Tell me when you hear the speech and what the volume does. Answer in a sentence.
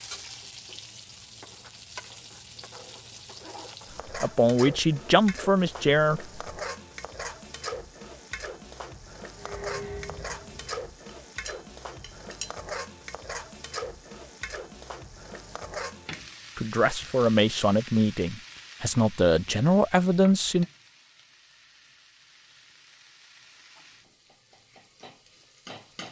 You can hear the speech briefly from 4.2 to 6.2 s; and from 16.6 to 20.6 s, getting quieter then louder.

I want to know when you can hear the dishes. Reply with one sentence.
The dishes can be heard from 9.4 to 12.5 s.